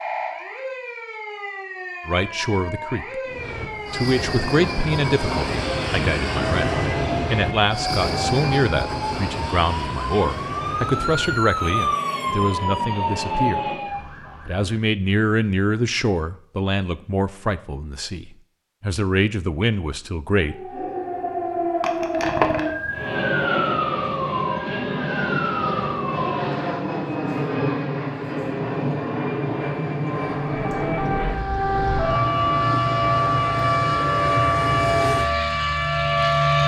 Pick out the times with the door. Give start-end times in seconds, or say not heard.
not heard.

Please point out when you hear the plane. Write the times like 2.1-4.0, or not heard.
3.2-13.9, 22.9-36.6.